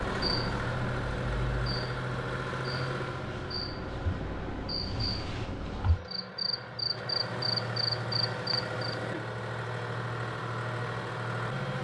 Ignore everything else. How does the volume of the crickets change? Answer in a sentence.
The loudness of the crickets goes up.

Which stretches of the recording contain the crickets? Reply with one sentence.
You can hear the crickets from 0.0 to 8.9 s.